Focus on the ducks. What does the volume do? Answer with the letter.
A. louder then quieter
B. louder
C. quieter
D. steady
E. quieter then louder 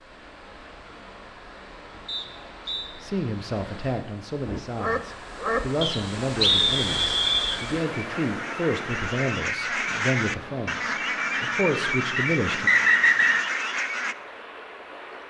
E.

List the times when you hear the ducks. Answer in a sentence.
The ducks can be heard from 4.5 to 14.2 s.